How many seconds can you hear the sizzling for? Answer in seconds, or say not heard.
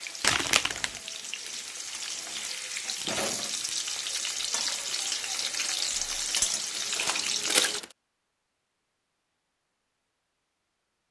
8 s.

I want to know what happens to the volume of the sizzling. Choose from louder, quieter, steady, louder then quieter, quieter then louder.
louder.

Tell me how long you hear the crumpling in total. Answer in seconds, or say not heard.
2 s.